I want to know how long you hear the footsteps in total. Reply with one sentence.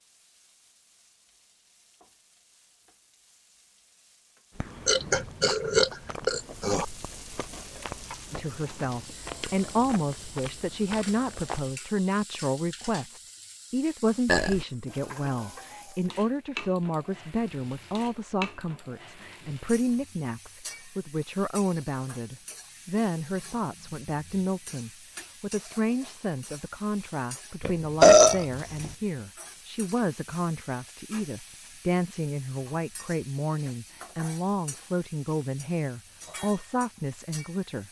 You can't hear the footsteps here.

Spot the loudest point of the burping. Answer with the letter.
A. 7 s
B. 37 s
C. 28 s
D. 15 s
C.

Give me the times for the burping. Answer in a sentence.
The burping can be heard from 4.8 to 6.8 s, from 14.2 to 14.7 s and from 27.6 to 28.9 s.